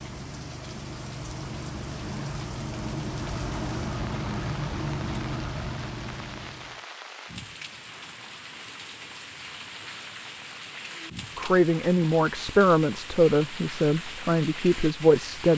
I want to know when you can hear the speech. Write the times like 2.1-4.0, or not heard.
11.3-15.5.